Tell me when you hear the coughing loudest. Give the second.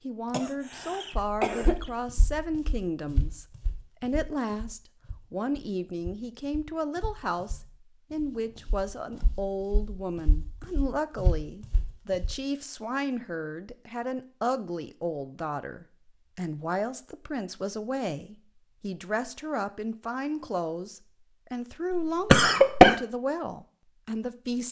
23 s.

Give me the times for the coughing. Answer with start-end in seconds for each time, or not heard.
0.3-1.9, 21.9-23.0.